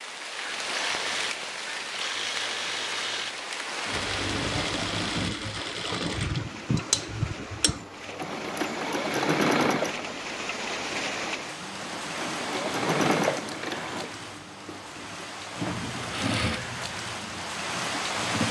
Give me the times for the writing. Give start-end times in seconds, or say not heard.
not heard.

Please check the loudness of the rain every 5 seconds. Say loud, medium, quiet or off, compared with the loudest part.
loud, medium, loud, loud.